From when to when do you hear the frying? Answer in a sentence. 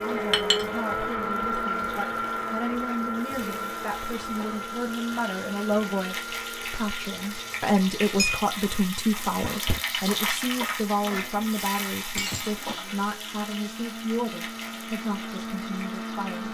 The frying can be heard from 0.0 to 16.4 s.